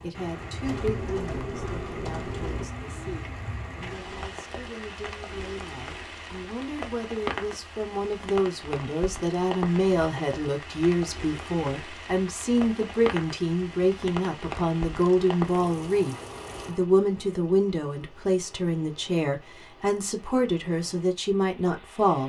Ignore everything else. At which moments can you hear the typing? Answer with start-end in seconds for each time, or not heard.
0.7-2.6.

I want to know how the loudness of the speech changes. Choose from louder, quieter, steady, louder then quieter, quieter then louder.
louder.